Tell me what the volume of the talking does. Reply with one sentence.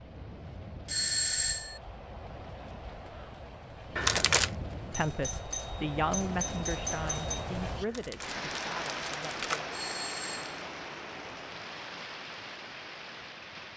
The loudness of the talking goes down.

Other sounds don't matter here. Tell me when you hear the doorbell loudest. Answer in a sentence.
The volume of the doorbell peaks at 1 second.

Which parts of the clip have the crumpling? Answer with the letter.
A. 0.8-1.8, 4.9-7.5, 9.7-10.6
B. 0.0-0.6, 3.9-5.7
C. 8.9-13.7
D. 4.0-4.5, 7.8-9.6
D.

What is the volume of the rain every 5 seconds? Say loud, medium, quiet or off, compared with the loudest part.
medium, loud, loud.